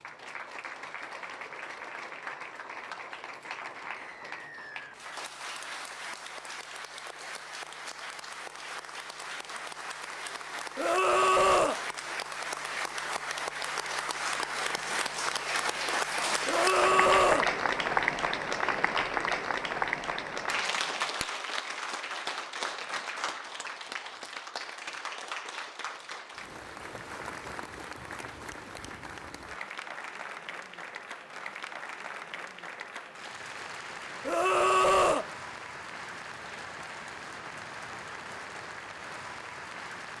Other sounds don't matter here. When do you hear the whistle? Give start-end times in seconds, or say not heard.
4.0-5.0.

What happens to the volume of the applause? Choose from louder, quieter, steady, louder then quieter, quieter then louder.
louder then quieter.